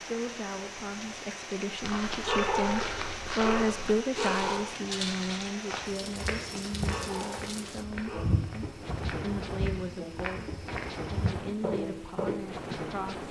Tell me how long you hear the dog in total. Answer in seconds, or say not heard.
4 s.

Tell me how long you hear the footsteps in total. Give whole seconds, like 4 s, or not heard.
11 s.